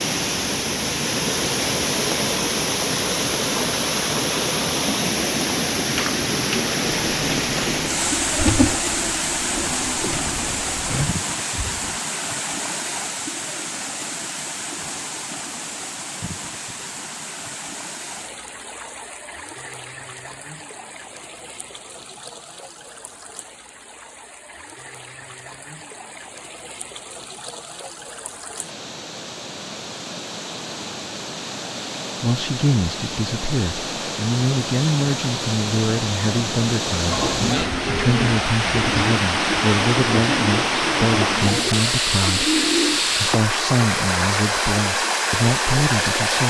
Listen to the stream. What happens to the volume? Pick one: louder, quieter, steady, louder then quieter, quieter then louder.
quieter then louder.